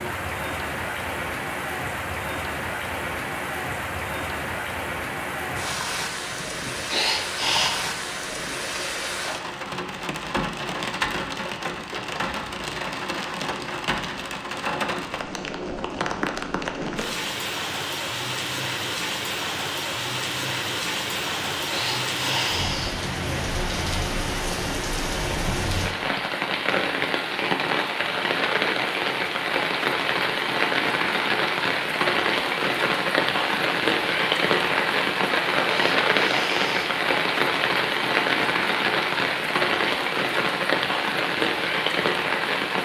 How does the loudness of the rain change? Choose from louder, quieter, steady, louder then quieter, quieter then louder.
louder.